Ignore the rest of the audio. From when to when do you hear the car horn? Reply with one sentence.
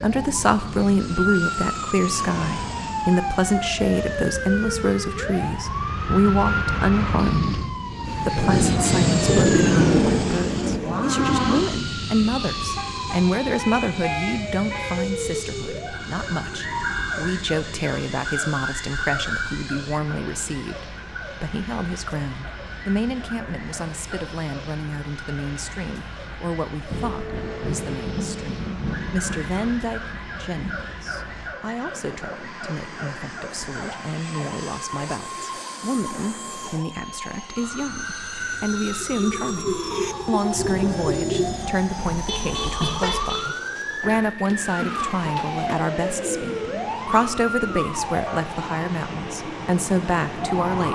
The car horn can be heard from 12.7 to 15.0 s and from 42.2 to 43.5 s.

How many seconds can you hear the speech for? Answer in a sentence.
You can hear the speech for 50 seconds altogether.